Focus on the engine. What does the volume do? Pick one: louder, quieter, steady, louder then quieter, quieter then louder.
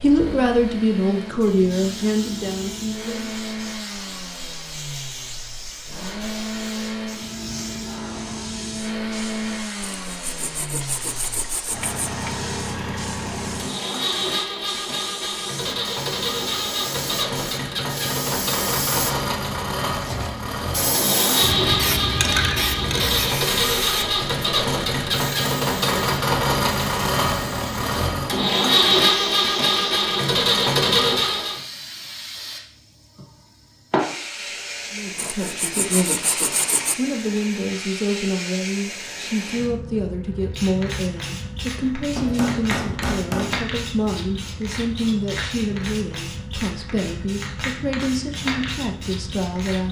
louder.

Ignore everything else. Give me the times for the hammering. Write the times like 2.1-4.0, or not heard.
42.1-43.6.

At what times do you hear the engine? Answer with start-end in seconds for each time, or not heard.
0.0-31.6.